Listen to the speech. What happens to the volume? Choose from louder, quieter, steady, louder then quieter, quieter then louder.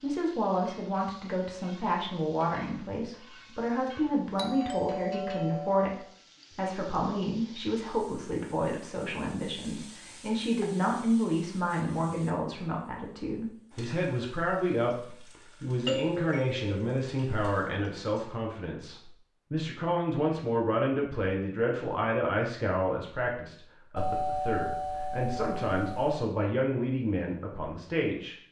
steady.